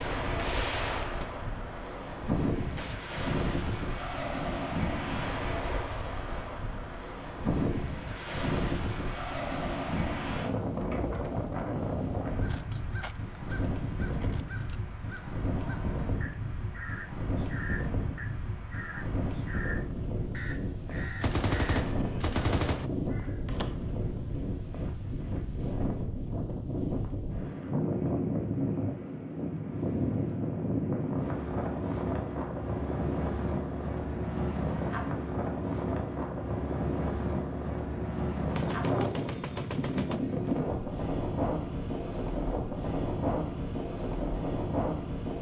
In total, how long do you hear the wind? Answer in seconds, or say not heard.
45 s.